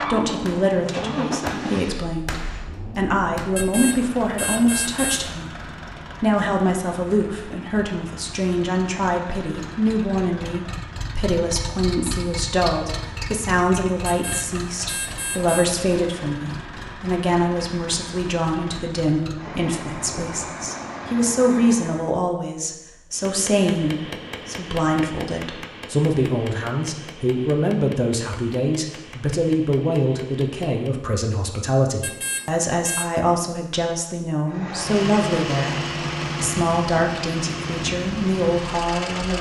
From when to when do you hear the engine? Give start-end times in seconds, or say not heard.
0.0-22.1, 34.5-39.3.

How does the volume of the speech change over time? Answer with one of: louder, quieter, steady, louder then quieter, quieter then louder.
steady.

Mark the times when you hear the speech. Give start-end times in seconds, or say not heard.
0.1-5.6, 6.2-39.3.